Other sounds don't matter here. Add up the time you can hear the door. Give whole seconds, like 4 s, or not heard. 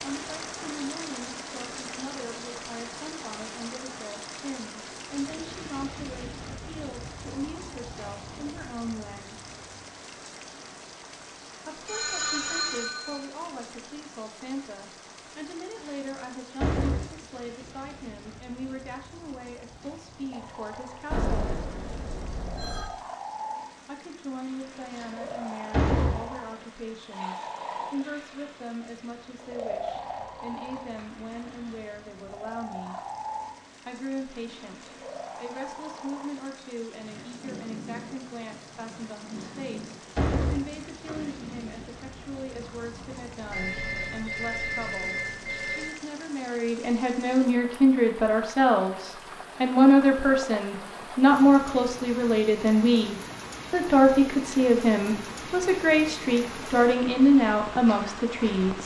5 s.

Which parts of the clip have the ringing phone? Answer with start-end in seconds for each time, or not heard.
11.8-13.2, 21.1-22.9, 43.5-45.9.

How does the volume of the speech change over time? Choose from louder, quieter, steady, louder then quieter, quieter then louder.
louder.